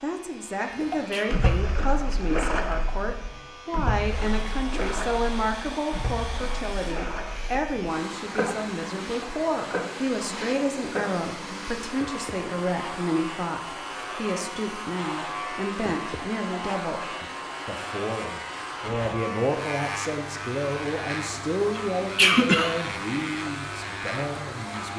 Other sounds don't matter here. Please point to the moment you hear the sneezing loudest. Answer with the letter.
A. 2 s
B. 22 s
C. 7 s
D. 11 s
B.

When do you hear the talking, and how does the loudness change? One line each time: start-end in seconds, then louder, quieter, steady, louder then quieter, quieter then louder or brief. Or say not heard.
0.0-24.9 steady.